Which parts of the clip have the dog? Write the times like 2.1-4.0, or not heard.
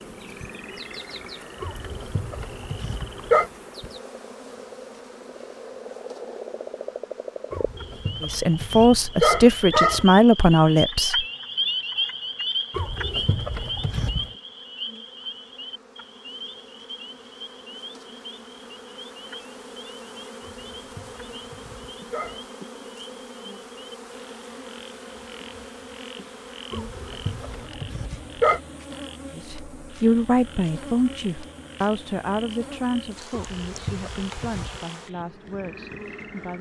1.6-3.5, 7.5-10.1, 12.7-14.3, 20.4-22.4, 26.7-28.6, 33.3-34.8.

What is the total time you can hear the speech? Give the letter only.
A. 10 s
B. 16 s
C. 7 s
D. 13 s
A.